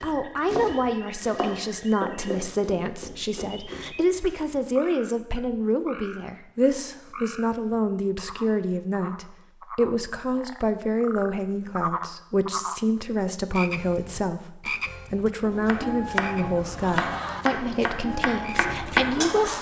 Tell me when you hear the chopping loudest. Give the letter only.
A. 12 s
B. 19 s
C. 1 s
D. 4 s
B.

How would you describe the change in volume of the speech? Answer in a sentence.
The volume of the speech stays about the same.